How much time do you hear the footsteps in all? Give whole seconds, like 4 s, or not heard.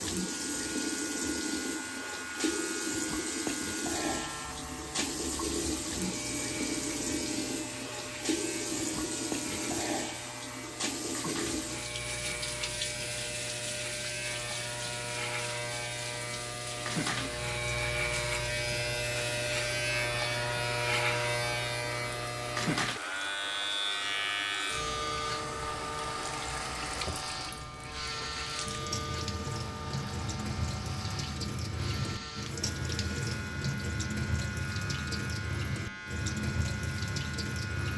not heard.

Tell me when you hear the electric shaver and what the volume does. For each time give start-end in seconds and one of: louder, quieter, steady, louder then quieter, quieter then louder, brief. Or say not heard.
0.1-37.9 louder then quieter.